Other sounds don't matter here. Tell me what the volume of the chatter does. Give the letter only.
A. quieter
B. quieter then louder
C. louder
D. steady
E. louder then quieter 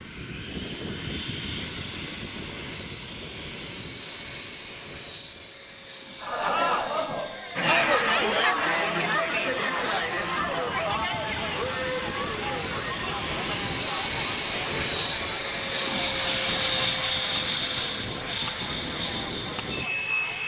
A.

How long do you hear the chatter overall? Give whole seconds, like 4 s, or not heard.
14 s.